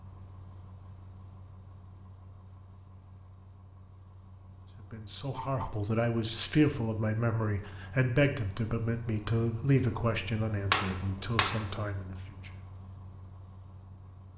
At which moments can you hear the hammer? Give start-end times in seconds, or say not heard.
10.7-11.7.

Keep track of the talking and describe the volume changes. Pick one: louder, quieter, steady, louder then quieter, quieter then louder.
quieter.